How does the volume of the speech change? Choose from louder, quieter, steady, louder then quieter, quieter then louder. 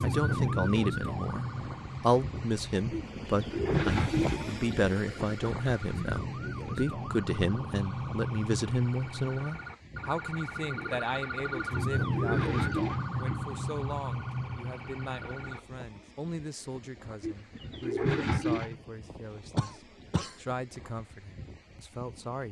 quieter.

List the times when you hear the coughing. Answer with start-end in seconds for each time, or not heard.
19.6-20.4.